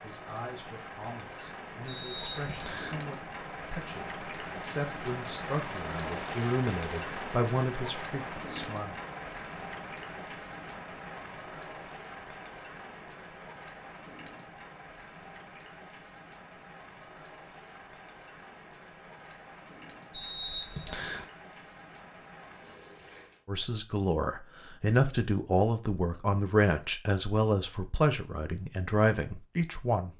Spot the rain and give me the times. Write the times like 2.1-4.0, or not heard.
0.0-23.4.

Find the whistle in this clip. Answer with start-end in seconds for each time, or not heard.
1.9-3.0, 20.1-21.2.